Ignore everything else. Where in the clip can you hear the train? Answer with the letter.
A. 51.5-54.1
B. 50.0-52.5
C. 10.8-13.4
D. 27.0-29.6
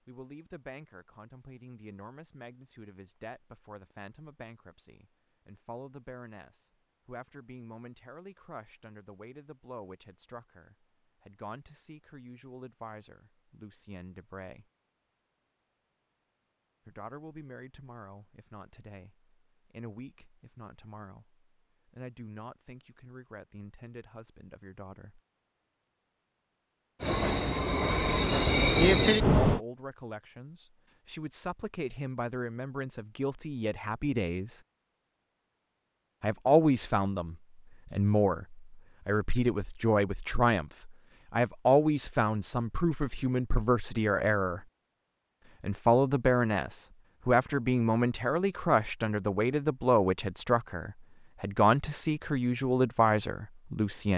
D.